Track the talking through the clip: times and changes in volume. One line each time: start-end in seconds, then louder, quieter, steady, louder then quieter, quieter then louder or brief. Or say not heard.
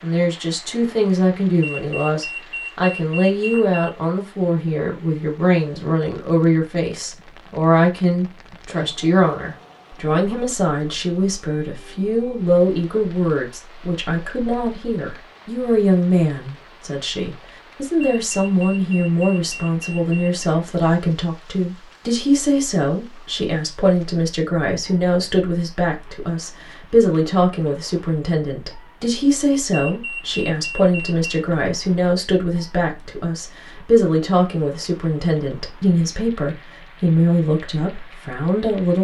0.0-38.9 steady.